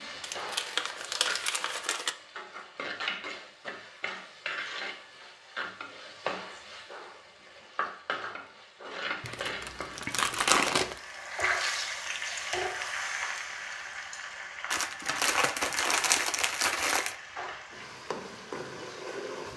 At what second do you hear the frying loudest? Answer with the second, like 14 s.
12 s.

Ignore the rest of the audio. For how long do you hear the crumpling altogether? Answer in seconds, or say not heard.
6 s.